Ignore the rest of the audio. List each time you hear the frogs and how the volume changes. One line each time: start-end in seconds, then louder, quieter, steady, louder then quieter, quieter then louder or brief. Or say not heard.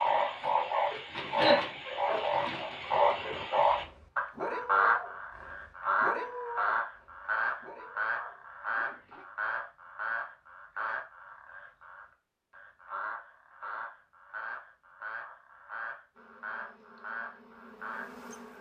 0.0-18.2 quieter.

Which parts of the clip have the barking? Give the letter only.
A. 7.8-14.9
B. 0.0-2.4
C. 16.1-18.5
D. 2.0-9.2
D.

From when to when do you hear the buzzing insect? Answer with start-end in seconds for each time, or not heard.
16.1-18.5.